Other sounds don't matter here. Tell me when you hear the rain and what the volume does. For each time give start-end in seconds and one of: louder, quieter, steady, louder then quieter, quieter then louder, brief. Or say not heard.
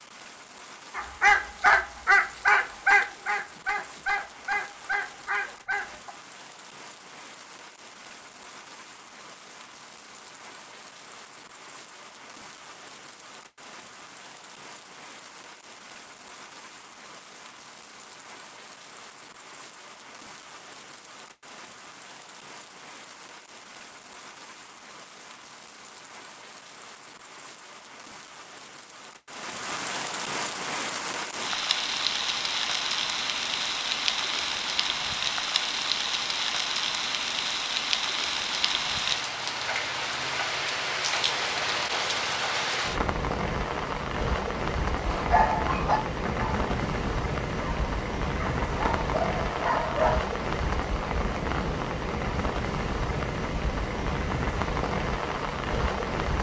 0.0-56.3 louder.